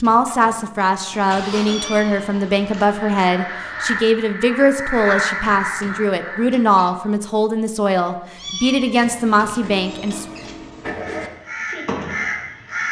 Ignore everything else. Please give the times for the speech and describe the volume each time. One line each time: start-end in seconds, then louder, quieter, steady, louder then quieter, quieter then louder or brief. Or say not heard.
0.0-10.2 steady.